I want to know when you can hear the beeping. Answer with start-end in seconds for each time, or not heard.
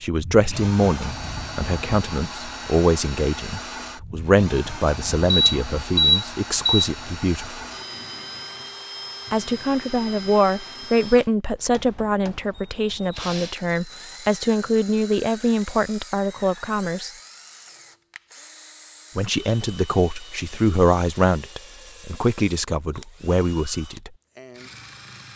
5.3-6.9.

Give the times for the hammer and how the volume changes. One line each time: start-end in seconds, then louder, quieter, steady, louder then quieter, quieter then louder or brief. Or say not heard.
not heard.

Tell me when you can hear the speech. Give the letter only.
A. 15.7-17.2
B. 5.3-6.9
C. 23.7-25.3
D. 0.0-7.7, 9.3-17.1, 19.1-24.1
D.